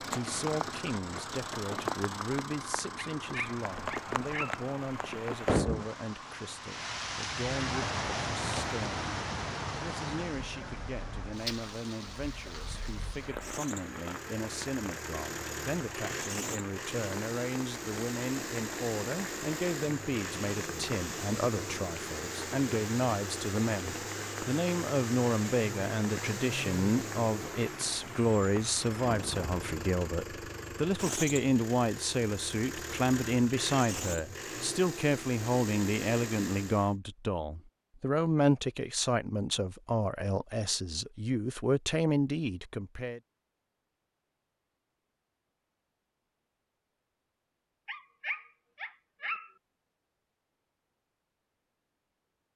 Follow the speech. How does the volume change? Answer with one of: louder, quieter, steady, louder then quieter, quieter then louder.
louder.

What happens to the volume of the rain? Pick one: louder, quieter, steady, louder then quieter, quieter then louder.
quieter.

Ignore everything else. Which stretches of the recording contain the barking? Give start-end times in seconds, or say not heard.
3.0-4.6, 47.9-49.5.